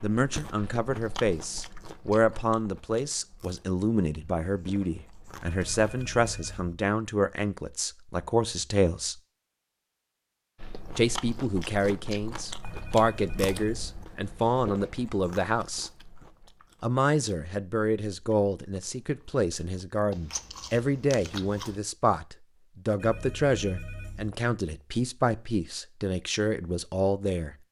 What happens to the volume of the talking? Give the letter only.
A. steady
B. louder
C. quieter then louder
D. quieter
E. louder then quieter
A.